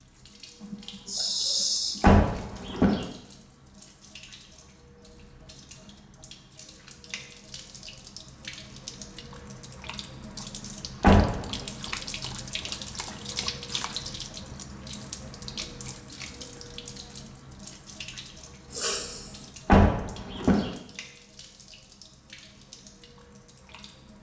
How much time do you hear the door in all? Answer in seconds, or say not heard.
3 s.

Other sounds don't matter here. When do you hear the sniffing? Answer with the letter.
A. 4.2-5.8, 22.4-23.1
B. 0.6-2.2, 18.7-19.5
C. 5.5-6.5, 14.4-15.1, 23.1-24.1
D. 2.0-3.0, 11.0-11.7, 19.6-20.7
B.